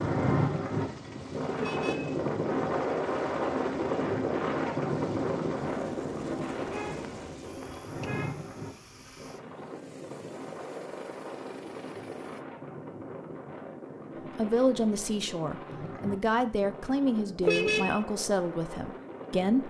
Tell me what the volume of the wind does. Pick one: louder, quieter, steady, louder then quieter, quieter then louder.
quieter.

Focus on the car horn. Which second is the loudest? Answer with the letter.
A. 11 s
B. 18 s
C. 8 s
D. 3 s
B.